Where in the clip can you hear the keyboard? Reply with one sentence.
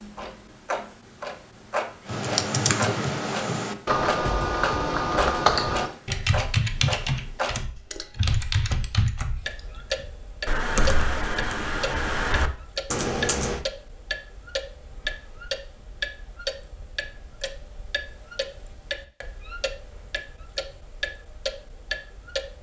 You can hear the keyboard from 2.0 to 13.6 s.